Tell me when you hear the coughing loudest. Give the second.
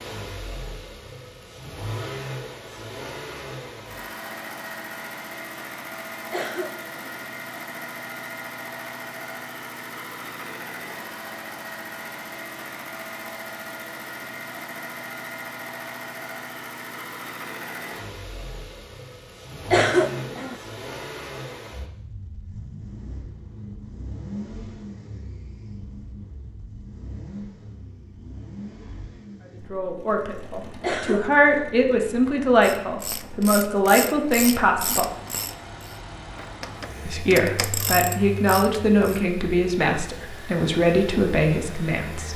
20 s.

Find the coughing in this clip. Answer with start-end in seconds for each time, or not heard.
6.3-7.2, 19.7-20.6, 30.8-31.7.